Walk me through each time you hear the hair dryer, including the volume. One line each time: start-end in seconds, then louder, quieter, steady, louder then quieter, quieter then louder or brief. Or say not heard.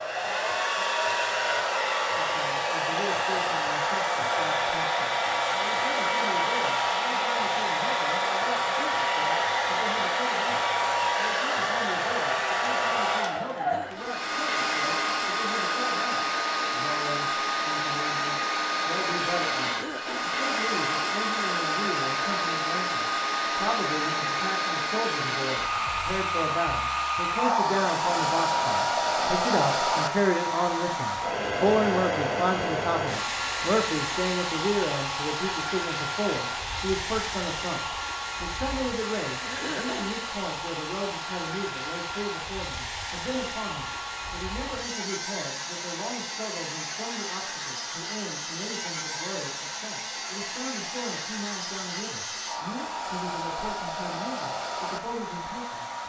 0.0-56.0 quieter.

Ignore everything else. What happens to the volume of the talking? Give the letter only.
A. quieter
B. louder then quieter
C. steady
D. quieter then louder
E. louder
B.